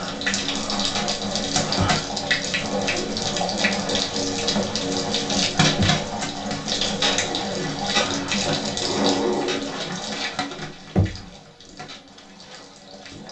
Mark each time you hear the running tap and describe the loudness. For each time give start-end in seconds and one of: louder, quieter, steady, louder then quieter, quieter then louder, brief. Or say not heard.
0.0-13.2 quieter.